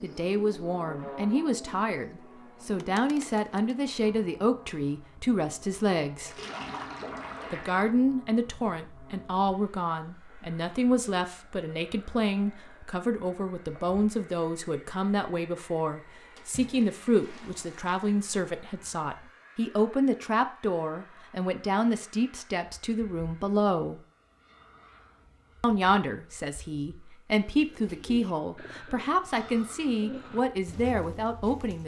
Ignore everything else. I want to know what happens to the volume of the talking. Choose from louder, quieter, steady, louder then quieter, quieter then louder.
steady.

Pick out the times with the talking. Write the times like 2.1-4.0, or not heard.
0.0-6.3, 7.5-24.0, 25.6-31.8.